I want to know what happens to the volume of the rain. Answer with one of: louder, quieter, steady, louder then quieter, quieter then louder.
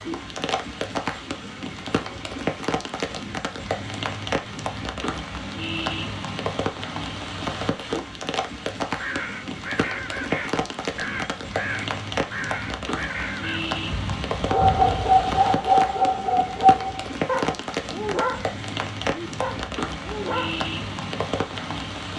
steady.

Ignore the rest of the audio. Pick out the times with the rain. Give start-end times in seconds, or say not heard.
0.0-22.1.